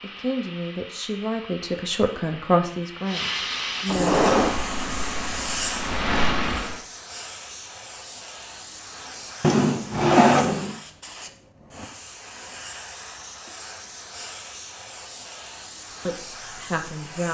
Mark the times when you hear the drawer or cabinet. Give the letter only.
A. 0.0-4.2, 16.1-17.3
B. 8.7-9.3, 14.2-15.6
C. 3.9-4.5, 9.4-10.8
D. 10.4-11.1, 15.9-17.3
C.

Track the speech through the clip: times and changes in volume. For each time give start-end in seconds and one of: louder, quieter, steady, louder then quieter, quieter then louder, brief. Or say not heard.
0.0-4.2 louder then quieter
16.1-17.3 brief.